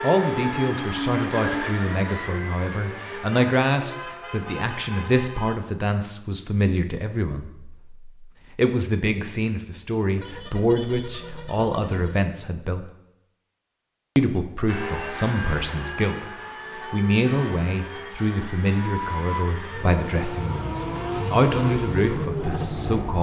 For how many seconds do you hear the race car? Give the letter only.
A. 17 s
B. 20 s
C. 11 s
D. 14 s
D.